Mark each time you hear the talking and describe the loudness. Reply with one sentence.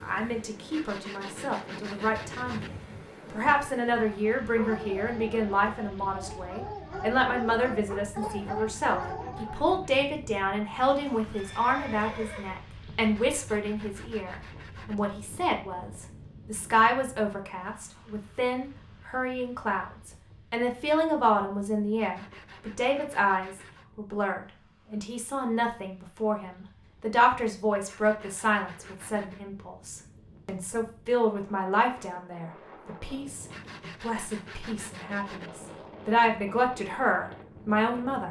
The talking can be heard from 0.0 to 38.2 s, at a steady volume.